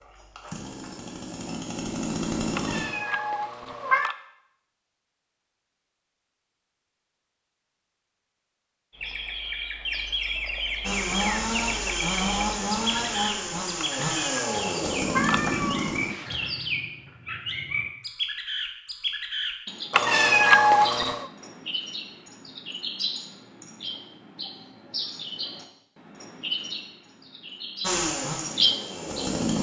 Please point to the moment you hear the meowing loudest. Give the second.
21 s.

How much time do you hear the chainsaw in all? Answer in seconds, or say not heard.
10 s.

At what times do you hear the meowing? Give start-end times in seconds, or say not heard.
2.5-4.2, 13.8-16.4, 19.9-21.3.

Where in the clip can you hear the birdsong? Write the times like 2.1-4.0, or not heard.
8.9-29.3.